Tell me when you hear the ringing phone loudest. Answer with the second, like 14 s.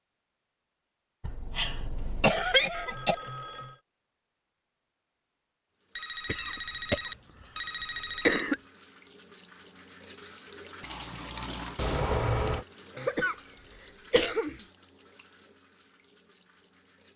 12 s.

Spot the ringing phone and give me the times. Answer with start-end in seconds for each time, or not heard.
2.7-3.8, 6.0-8.4, 11.8-12.7.